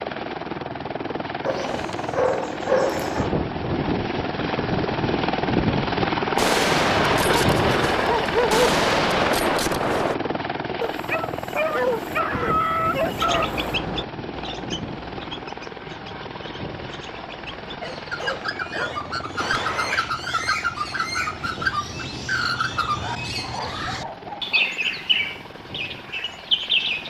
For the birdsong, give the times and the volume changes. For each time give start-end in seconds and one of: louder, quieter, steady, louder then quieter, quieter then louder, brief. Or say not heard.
13.1-27.0 louder.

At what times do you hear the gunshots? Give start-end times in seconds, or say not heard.
6.3-10.2, 19.4-20.1.